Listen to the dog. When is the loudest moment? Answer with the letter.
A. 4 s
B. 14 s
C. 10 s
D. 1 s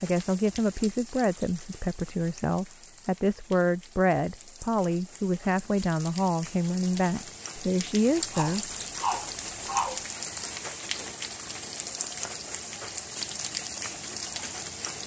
C.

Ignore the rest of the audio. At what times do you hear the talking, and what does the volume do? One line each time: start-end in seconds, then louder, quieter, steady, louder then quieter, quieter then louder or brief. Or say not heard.
0.0-8.8 steady.